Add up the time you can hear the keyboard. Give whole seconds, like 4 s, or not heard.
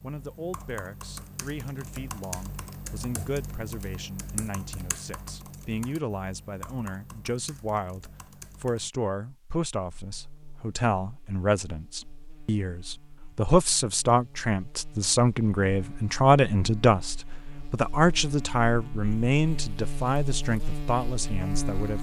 9 s.